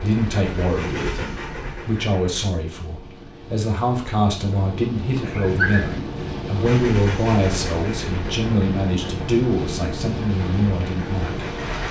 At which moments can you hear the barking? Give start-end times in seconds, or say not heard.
5.2-6.0.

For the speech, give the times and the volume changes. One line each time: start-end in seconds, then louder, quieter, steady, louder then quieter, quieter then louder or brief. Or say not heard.
0.0-11.4 steady.